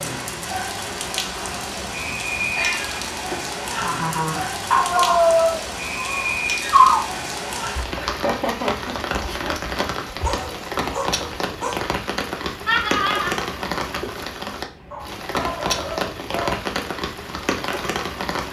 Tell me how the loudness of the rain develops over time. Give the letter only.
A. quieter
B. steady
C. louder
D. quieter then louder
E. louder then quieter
B.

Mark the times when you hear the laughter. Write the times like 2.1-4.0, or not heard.
3.3-4.6, 8.0-9.6, 12.7-13.3.